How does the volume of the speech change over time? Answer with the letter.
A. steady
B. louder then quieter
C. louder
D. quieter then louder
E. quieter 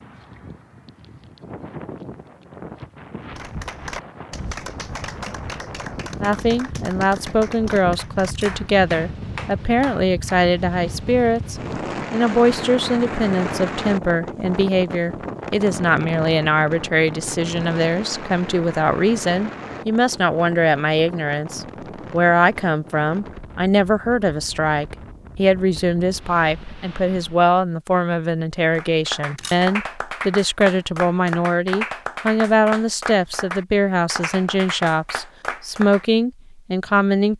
A.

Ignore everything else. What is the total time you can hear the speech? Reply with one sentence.
You can hear the speech for 31 seconds altogether.